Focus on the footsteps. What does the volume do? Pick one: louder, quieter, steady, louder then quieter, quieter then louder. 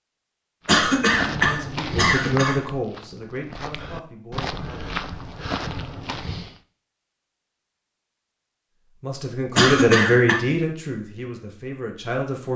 quieter then louder.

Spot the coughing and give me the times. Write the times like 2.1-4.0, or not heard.
0.7-2.5, 9.6-10.4.